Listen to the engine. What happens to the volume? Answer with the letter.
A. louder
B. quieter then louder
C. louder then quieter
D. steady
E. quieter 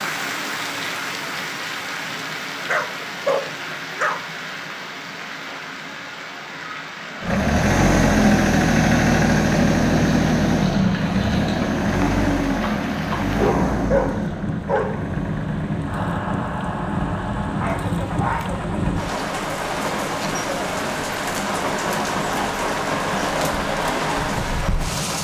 E.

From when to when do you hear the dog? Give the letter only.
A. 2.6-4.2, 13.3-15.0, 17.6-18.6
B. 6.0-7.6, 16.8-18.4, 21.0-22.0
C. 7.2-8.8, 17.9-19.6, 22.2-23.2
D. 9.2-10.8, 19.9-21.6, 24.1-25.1
A.